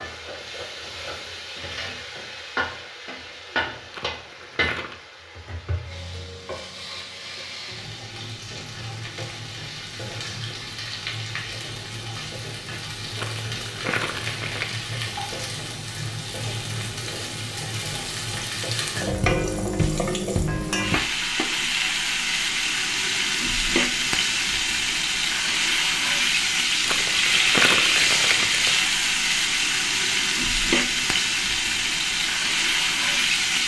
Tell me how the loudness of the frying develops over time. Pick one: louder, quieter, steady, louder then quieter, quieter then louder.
louder.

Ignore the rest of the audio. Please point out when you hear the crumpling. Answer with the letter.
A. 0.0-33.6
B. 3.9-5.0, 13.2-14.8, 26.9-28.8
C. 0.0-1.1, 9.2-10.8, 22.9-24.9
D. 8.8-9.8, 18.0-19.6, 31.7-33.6
B.